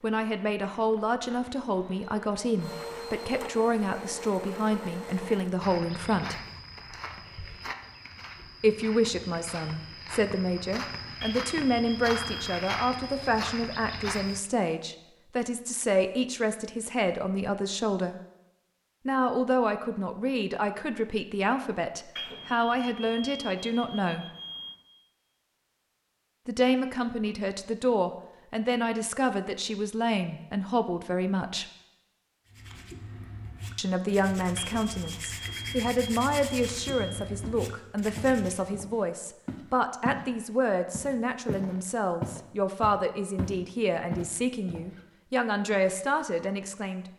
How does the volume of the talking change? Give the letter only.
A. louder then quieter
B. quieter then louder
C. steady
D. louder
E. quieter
C.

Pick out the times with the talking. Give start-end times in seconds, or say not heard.
0.0-6.3, 8.6-18.1, 19.1-24.2, 26.4-31.6, 33.8-47.0.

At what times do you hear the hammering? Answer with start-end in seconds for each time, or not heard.
not heard.